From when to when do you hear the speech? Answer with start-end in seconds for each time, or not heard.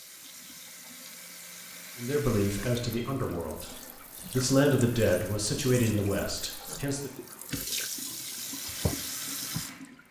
1.9-7.1.